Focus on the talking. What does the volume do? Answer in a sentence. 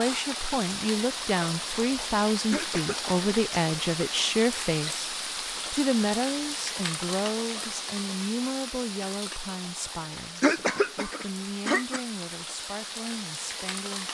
The volume of the talking goes down.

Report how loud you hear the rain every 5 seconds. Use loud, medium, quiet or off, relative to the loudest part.
loud, loud, medium.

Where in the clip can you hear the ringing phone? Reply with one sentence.
The ringing phone can't be heard in this clip.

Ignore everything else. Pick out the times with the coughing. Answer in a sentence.
You can hear the coughing from 2.5 to 3.1 s and from 10.4 to 12.0 s.